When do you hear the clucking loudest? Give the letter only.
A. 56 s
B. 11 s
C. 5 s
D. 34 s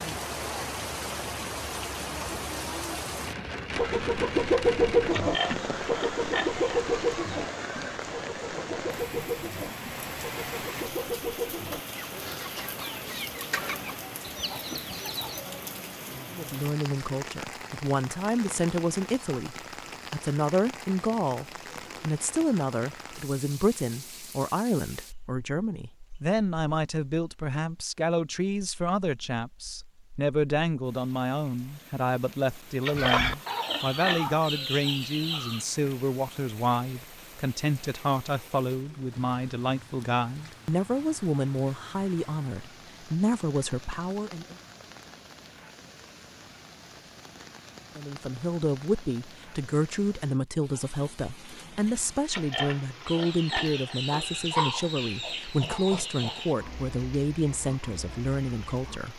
C.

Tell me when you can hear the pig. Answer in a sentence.
You can hear the pig from 5.1 to 6.7 s, from 32.8 to 34.2 s and from 52.3 to 54.0 s.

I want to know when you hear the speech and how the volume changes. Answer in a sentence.
The speech can be heard from 16.3 to 44.5 s, at a steady volume; and from 48.0 to 59.1 s, at a steady volume.